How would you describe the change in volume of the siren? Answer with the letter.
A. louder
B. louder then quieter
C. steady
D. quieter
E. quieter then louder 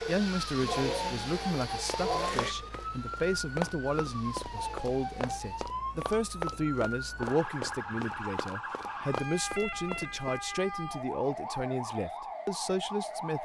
C.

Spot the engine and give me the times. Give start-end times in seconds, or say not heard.
0.0-5.7.